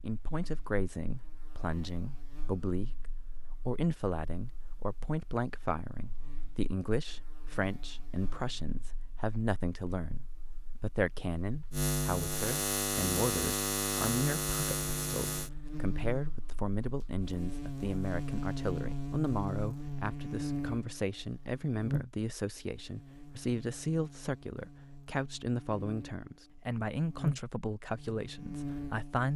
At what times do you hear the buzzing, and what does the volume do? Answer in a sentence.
The buzzing can be heard from 0.0 to 29.3 s, getting louder then quieter.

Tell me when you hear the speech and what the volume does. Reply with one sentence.
The speech can be heard from 0.0 to 29.3 s, at a steady volume.